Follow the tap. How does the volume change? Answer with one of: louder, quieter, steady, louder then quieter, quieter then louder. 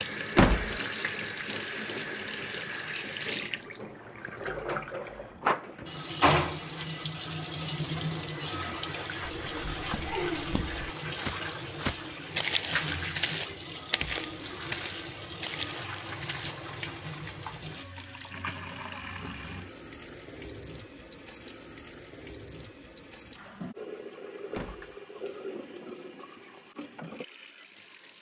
quieter.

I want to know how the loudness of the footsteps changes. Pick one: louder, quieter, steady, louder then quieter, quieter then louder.
louder then quieter.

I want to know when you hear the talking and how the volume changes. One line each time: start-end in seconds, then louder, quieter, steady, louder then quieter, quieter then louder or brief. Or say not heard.
not heard.